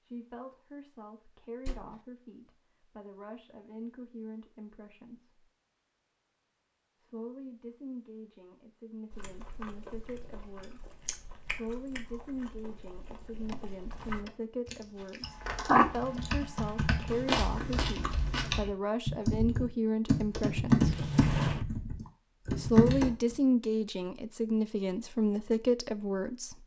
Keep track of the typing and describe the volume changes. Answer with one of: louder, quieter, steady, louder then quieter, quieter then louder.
louder.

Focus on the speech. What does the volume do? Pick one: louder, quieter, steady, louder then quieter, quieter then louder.
louder.